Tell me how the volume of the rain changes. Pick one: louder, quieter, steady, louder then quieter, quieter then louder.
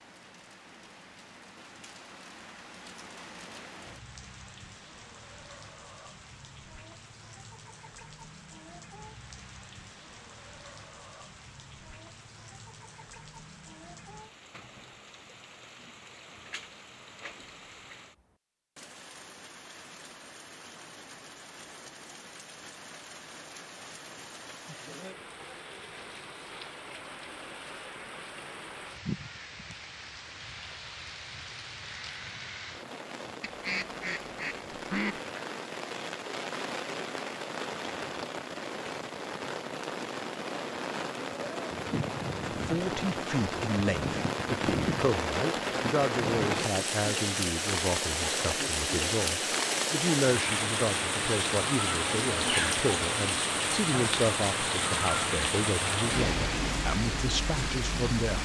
louder.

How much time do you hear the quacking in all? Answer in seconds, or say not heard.
2 s.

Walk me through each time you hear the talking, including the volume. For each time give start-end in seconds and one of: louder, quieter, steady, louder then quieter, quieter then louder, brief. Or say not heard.
42.5-58.4 steady.